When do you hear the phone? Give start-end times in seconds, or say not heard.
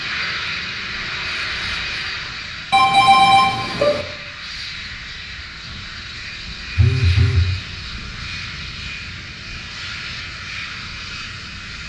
2.7-4.0, 6.8-7.5.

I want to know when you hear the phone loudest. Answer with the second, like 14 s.
3 s.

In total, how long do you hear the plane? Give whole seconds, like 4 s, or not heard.
12 s.